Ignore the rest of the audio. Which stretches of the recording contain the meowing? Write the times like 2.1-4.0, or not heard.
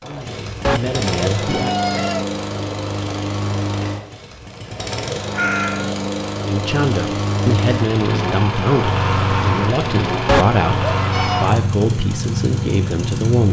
0.6-2.2, 5.3-6.0, 10.2-11.5.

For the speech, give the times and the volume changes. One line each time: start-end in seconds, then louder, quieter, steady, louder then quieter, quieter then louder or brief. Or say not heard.
0.0-1.8 brief
6.5-13.4 steady.